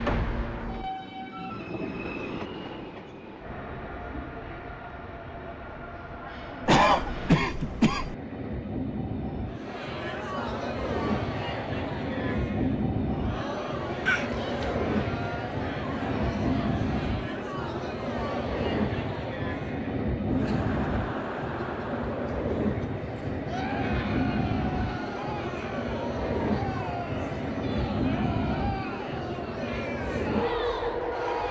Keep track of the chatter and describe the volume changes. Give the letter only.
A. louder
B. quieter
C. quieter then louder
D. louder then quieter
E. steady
E.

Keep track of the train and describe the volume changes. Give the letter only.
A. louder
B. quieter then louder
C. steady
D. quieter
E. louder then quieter
A.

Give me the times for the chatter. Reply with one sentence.
You can hear the chatter from 9.4 to 31.4 s.